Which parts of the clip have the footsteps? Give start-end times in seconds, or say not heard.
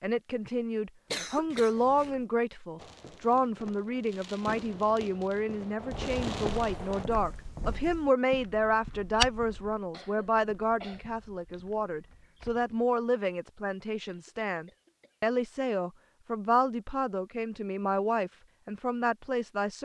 5.8-12.9.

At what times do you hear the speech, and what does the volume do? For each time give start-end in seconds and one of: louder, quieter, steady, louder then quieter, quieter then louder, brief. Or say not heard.
0.0-19.7 steady.